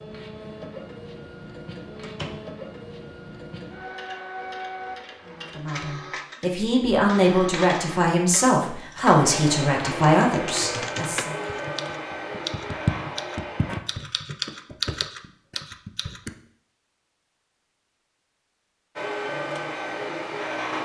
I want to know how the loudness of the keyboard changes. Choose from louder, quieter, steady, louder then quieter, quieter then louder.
louder then quieter.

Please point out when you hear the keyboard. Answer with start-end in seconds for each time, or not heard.
10.2-16.3.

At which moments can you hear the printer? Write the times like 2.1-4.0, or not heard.
0.0-13.8, 18.9-20.7.